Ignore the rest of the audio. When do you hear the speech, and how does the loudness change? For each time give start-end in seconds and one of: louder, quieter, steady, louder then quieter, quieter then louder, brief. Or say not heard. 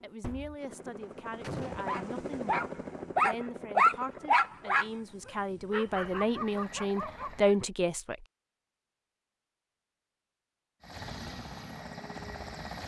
0.0-8.2 louder.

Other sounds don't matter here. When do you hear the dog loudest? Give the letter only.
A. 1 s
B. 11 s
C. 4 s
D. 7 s
C.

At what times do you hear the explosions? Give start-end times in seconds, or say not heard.
1.4-1.9.